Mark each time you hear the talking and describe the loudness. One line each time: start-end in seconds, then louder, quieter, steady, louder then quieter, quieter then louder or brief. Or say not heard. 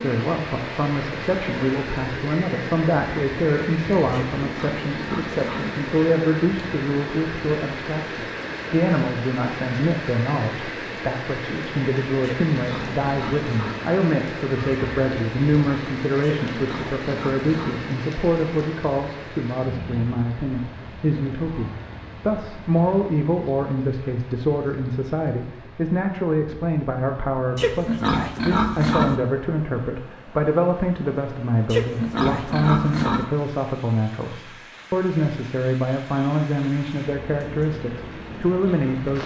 0.0-39.2 steady.